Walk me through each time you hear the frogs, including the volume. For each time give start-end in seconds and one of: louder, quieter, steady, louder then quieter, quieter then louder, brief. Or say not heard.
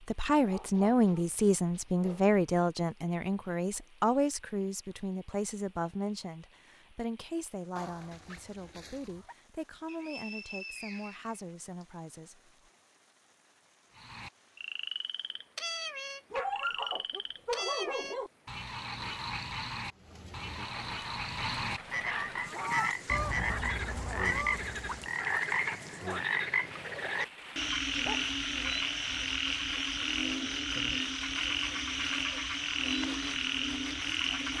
13.9-34.5 louder.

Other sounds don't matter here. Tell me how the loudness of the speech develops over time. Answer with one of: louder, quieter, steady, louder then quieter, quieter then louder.
quieter.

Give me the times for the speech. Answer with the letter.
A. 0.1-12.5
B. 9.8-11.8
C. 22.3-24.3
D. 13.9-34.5
A.